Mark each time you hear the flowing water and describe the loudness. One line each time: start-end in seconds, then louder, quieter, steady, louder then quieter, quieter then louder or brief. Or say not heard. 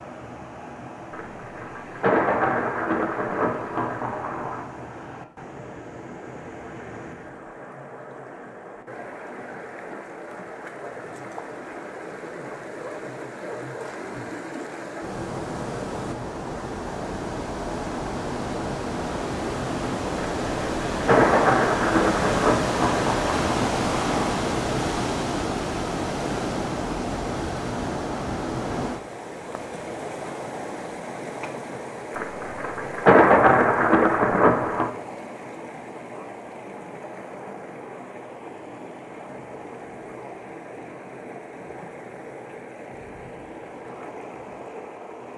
0.0-45.3 louder then quieter.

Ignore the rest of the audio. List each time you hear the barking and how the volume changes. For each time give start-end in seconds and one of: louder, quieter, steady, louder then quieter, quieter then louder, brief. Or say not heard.
not heard.